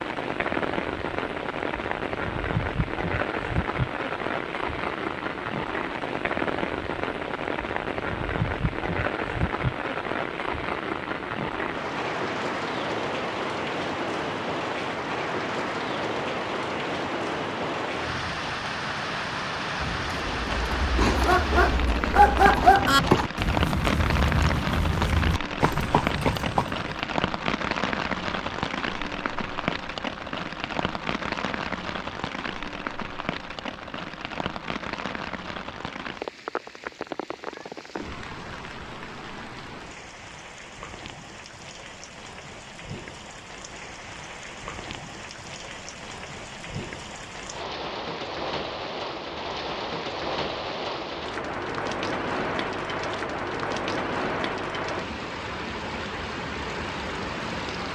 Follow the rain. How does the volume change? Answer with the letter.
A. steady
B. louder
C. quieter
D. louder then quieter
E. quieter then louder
E.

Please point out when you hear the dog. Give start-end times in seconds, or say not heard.
21.1-23.0.